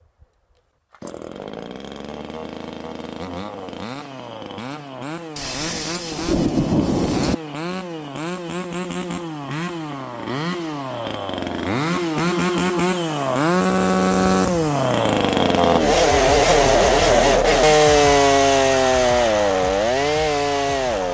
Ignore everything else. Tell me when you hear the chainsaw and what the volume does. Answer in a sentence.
The chainsaw can be heard from 0.0 to 21.0 s, getting louder.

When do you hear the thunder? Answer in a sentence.
You can hear the thunder from 5.3 to 7.3 s.